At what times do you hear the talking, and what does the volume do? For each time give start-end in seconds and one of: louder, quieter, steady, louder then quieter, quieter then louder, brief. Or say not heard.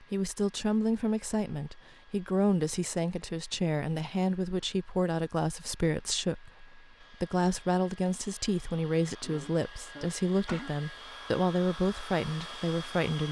0.0-13.2 steady.